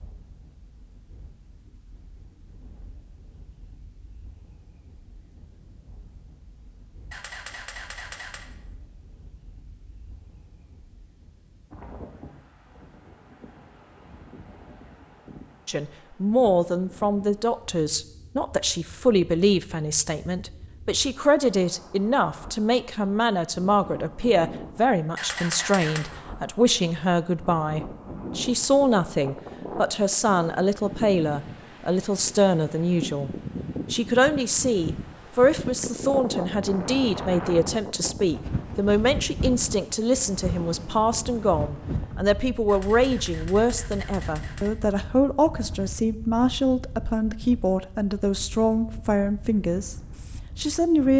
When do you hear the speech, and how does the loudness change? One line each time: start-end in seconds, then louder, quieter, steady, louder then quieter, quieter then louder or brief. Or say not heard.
15.7-51.1 steady.